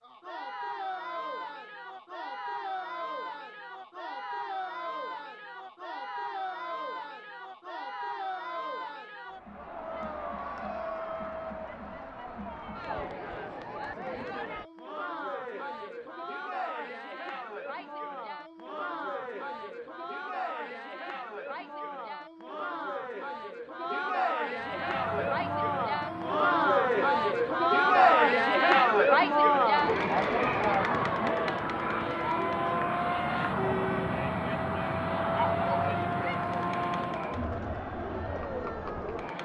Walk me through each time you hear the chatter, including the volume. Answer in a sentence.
You can hear the chatter from 0.0 to 39.4 s, getting louder then quieter.